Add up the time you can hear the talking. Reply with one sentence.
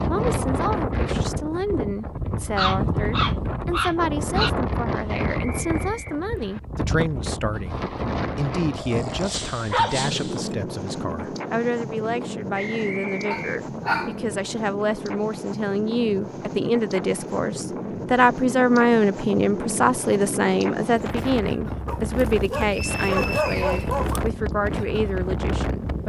The talking can be heard for 26 seconds in total.